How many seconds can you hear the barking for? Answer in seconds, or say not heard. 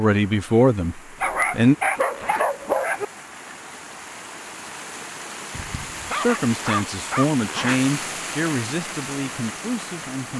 4 s.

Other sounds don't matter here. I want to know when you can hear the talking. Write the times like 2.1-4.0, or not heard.
0.0-1.8, 6.1-10.3.